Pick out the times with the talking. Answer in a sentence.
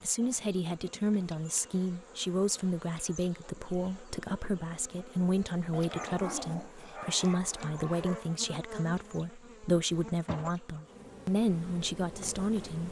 The talking can be heard from 0.0 to 12.8 s.